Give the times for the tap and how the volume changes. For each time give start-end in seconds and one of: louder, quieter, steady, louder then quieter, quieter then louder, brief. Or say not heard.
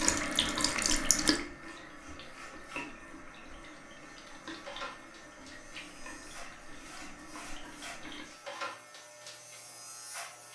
0.0-8.3 quieter.